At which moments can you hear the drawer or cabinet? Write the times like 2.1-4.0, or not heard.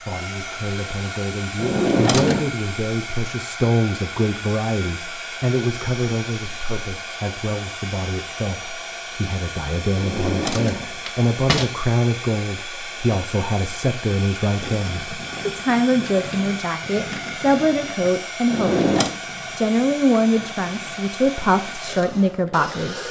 1.6-2.5, 9.9-11.7, 18.5-19.1.